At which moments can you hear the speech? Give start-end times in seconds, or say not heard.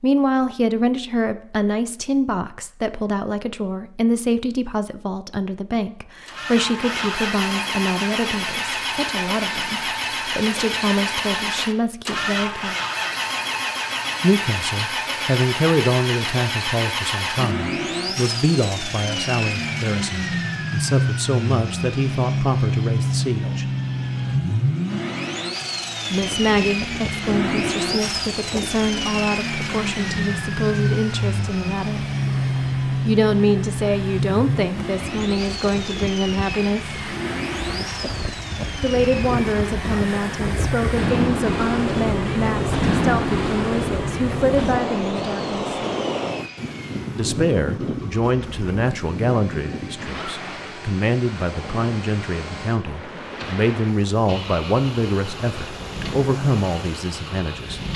0.0-12.8, 14.2-23.6, 26.1-32.0, 32.9-37.0, 38.8-45.8, 47.1-57.8.